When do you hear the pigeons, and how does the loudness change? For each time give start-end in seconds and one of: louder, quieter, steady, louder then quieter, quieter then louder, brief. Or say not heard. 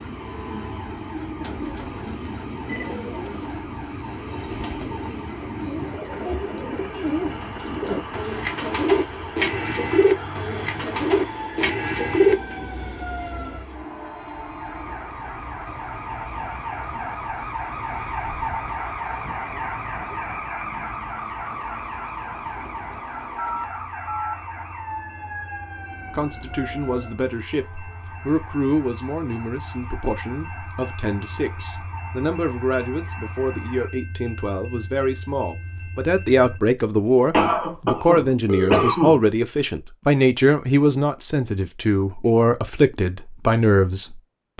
1.4-12.3 louder.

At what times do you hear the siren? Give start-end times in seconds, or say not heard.
0.0-33.9.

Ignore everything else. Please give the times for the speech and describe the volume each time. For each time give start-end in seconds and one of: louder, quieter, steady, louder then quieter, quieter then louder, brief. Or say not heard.
26.1-44.5 louder.